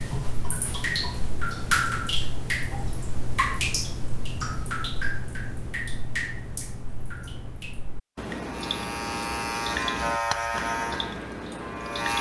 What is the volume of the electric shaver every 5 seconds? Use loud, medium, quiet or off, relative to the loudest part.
off, loud, loud.